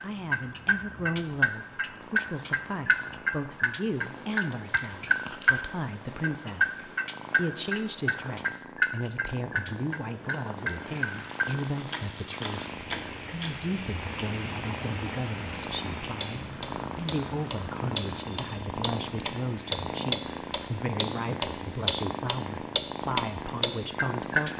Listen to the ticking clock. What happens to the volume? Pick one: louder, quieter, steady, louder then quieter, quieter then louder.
quieter then louder.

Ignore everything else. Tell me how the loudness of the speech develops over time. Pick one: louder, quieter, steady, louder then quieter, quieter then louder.
steady.